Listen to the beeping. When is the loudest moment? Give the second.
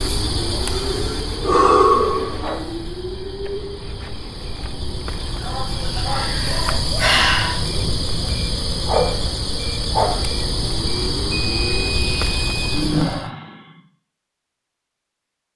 12 s.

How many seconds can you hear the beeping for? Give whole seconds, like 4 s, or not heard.
2 s.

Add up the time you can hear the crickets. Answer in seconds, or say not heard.
13 s.